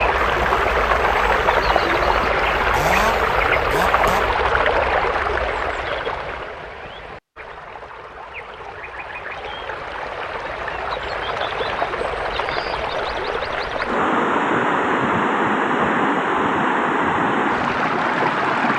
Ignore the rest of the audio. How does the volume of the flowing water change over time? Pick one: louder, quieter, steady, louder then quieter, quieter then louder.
quieter then louder.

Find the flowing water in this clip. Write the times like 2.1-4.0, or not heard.
0.0-18.7.